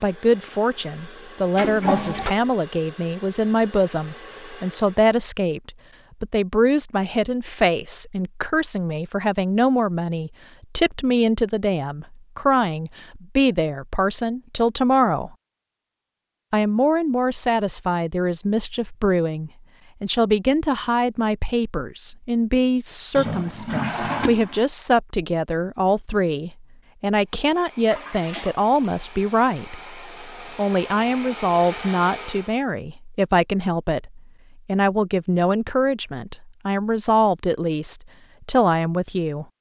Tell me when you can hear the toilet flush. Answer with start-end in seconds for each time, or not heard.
1.6-2.4, 23.1-24.6, 27.9-28.6.